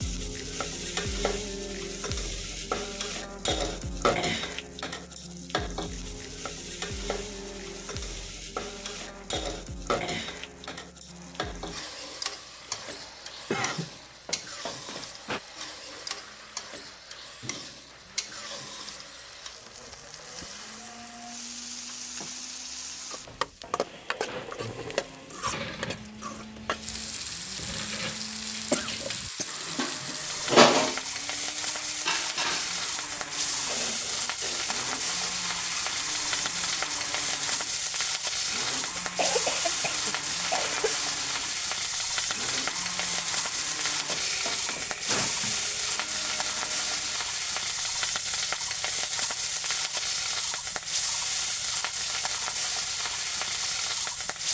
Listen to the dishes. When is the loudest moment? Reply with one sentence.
The loudest moment of the dishes is at 31 seconds.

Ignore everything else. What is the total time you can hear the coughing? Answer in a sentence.
You can hear the coughing for 4 seconds altogether.